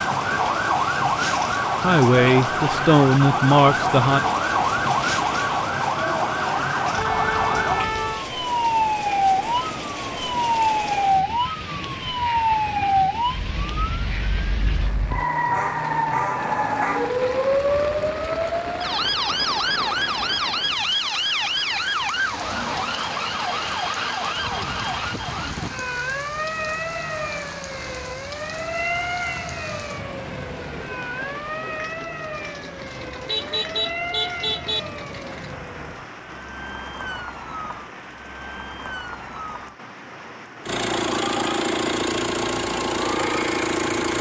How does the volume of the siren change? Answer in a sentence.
The loudness of the siren goes down.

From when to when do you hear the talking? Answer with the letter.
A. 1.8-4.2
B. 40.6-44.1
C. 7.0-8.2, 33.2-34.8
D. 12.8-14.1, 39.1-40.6
A.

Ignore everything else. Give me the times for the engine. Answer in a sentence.
You can hear the engine from 40.6 to 44.1 s.